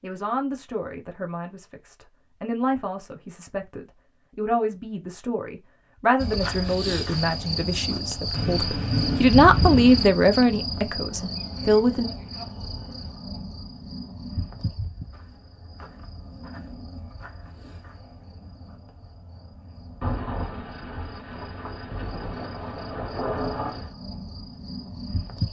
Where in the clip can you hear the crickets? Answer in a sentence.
The crickets can be heard from 6.2 to 25.4 s.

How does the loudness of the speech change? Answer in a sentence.
The volume of the speech goes up.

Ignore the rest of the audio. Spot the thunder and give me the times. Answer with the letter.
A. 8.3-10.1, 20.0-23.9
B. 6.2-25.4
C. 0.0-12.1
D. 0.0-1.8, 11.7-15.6
A.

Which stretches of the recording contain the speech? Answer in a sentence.
The speech can be heard from 0.0 to 12.1 s.